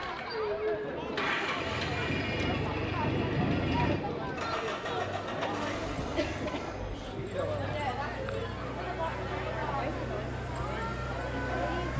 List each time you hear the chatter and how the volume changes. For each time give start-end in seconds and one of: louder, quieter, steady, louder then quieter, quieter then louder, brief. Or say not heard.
0.0-11.9 steady.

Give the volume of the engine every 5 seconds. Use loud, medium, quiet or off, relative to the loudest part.
loud, medium, loud.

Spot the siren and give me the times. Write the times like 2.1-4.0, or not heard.
not heard.